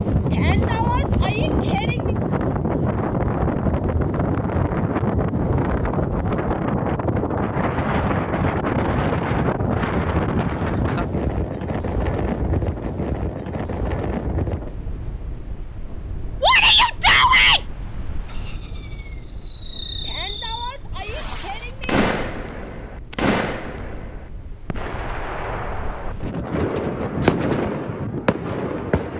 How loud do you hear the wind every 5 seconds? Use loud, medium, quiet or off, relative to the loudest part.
loud, loud, loud, quiet, quiet, medium.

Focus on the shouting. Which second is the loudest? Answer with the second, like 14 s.
17 s.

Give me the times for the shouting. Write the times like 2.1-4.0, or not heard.
0.3-2.1, 16.4-17.6, 20.0-21.9.